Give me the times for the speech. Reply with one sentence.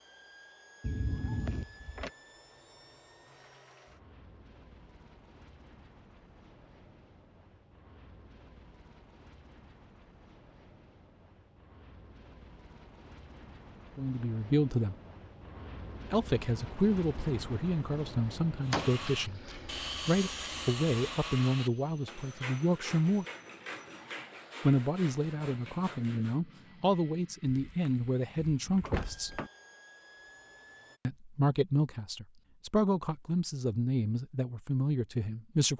You can hear the speech from 13.9 to 14.9 s, from 16.1 to 19.4 s, from 20.1 to 23.2 s, from 24.6 to 29.3 s and from 31.1 to 35.7 s.